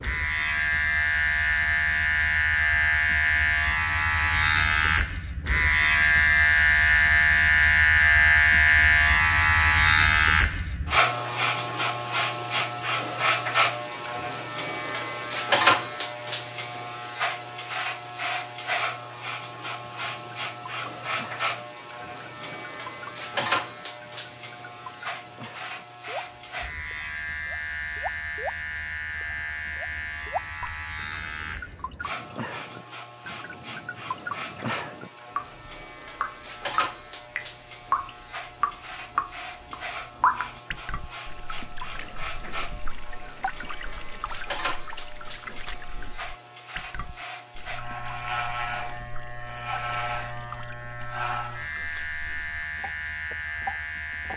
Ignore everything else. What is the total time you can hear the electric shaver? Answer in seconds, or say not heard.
54 s.